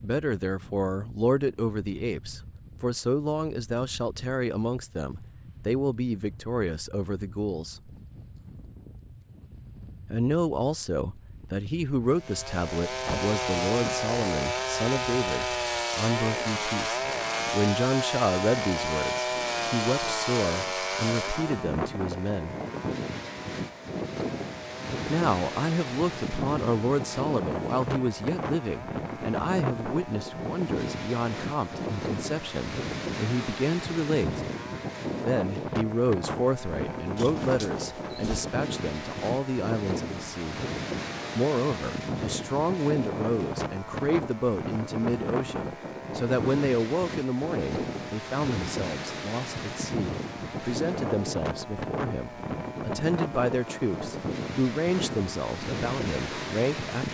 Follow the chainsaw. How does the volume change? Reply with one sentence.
The volume of the chainsaw goes down.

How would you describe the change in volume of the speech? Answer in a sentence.
The loudness of the speech stays about the same.